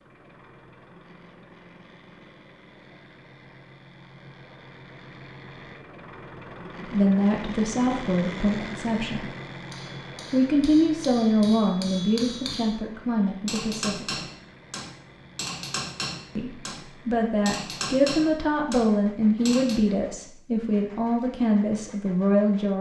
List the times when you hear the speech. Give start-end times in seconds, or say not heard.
6.8-9.3, 10.3-14.2, 16.4-22.7.